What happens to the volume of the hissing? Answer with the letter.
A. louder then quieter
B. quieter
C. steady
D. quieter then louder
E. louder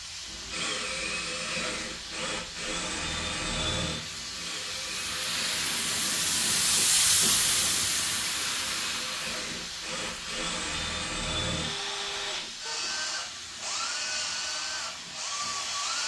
A.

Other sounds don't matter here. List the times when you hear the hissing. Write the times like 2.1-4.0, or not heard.
0.0-16.0.